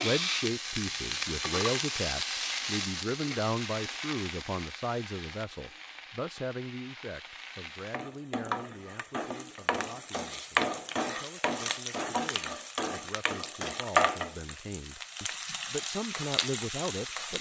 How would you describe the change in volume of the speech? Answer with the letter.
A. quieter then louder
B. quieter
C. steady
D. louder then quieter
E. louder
A.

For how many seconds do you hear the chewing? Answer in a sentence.
You can't hear the chewing here.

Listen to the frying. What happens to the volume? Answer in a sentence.
The loudness of the frying goes down, then up.